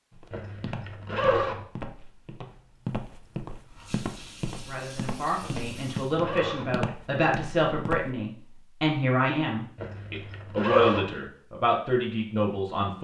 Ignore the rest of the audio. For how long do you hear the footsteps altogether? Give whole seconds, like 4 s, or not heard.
8 s.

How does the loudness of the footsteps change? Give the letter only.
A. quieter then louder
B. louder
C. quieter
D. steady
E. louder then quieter
D.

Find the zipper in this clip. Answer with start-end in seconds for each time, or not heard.
0.3-1.6, 5.4-6.8, 9.8-11.1.